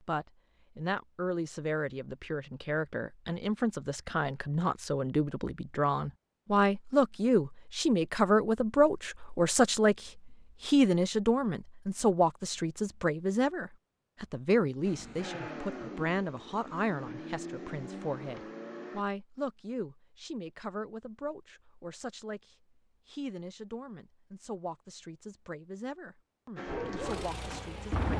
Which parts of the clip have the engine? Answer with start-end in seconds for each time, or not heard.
14.8-19.1, 26.6-28.1.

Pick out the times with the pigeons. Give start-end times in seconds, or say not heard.
26.6-28.1.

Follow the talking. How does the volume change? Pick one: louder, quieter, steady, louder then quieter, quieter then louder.
louder then quieter.